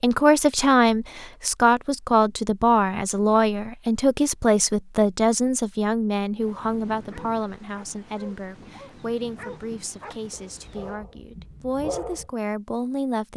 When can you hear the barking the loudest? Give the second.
12 s.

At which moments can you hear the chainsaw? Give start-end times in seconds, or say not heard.
not heard.